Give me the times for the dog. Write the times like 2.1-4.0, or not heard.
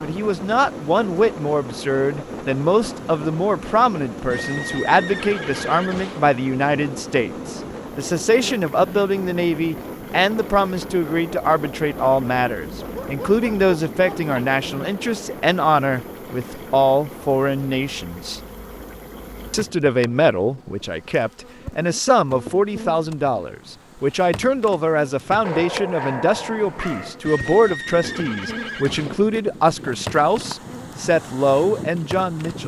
12.8-14.4, 25.4-27.2.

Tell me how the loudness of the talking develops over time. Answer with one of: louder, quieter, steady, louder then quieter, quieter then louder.
steady.